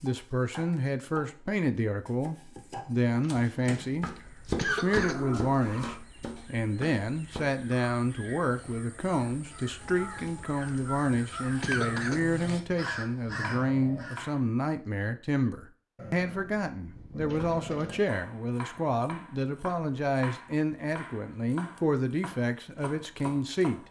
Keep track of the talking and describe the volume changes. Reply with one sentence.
The loudness of the talking stays about the same.